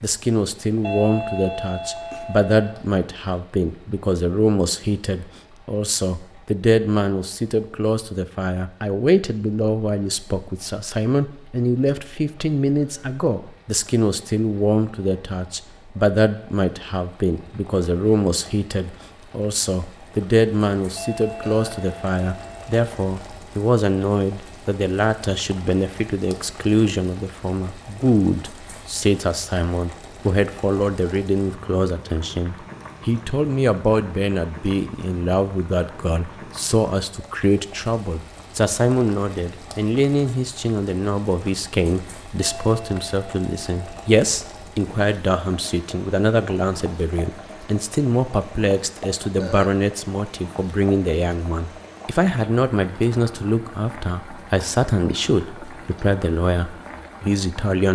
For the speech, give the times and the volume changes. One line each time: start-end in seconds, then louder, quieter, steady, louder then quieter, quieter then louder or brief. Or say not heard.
0.0-57.9 steady.